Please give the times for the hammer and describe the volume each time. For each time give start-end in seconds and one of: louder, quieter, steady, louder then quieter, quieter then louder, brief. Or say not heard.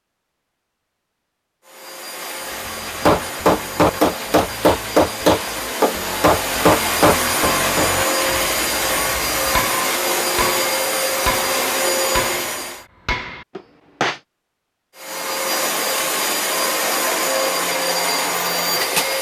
3.0-14.2 quieter.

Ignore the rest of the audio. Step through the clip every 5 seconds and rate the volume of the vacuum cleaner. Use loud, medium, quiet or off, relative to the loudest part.
medium, loud, loud, loud.